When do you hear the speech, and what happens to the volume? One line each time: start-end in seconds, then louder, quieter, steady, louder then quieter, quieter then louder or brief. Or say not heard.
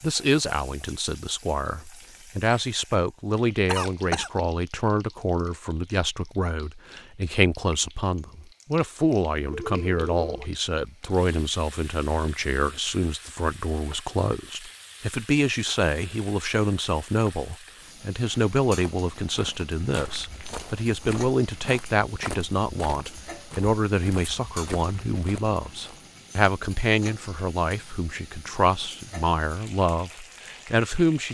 0.0-31.2 steady.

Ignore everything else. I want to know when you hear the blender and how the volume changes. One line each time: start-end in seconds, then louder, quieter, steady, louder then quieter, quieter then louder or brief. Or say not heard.
not heard.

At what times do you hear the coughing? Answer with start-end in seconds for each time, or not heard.
3.6-4.3.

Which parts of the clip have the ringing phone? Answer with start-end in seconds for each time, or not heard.
9.5-10.5.